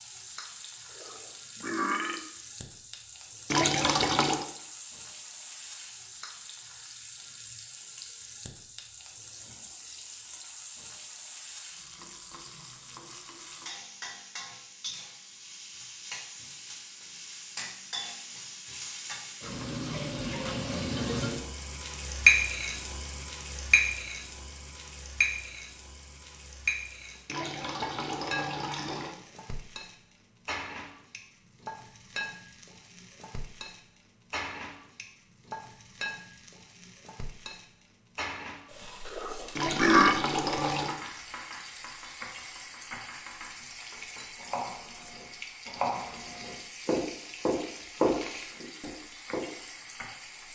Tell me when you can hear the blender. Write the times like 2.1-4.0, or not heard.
not heard.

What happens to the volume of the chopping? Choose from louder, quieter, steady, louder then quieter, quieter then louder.
louder.